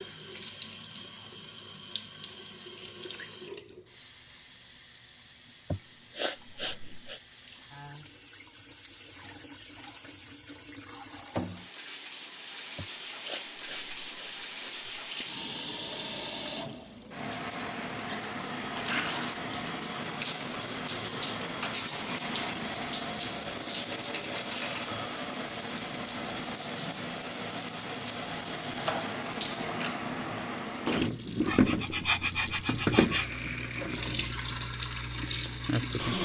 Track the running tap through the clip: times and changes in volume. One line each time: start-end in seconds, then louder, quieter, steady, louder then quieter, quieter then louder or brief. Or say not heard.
0.0-36.2 louder.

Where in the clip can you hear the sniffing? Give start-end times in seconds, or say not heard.
5.7-7.2, 12.8-15.1, 31.4-33.4.